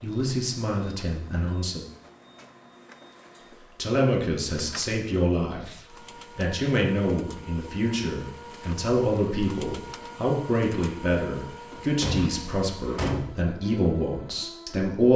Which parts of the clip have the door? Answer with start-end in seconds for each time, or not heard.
11.7-13.3.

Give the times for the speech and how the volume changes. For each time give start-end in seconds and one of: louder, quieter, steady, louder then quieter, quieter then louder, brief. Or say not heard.
0.0-1.9 brief
3.8-5.7 brief
6.3-15.1 steady.